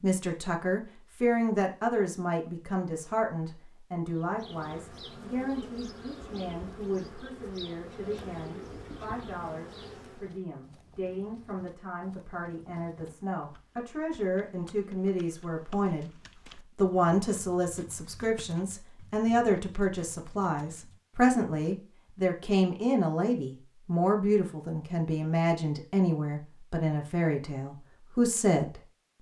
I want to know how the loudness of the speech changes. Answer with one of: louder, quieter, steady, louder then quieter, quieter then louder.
quieter then louder.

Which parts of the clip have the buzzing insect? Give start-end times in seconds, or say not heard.
4.1-10.4.